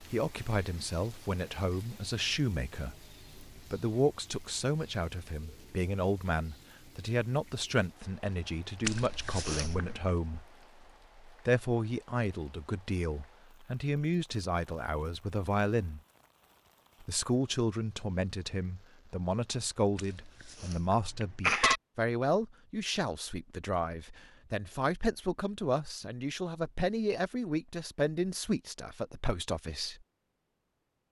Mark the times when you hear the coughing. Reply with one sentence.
You can hear the coughing from 8.8 to 10.1 s and from 19.9 to 21.8 s.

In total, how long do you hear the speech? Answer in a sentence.
You can hear the speech for 28 seconds altogether.